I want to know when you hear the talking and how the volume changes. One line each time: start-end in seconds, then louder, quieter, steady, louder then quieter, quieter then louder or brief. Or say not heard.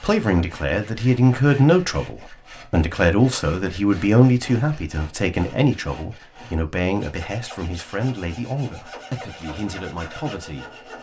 0.0-10.9 quieter.